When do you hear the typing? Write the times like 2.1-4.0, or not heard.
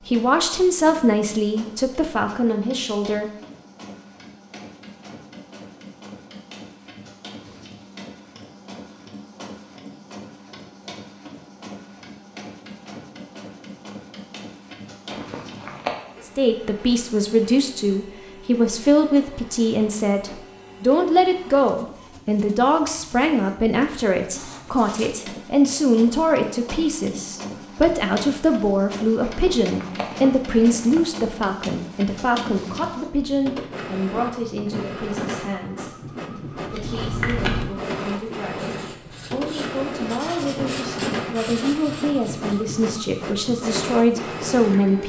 not heard.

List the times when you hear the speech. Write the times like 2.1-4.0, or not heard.
0.1-3.3, 16.2-45.0.